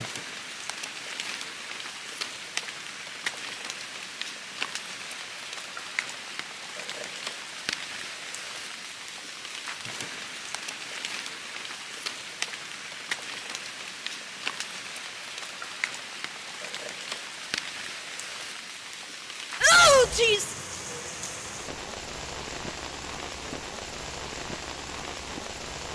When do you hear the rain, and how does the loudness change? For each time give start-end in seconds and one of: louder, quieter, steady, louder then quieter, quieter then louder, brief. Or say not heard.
0.0-25.8 steady.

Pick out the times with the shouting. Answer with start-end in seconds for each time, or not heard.
19.6-20.6.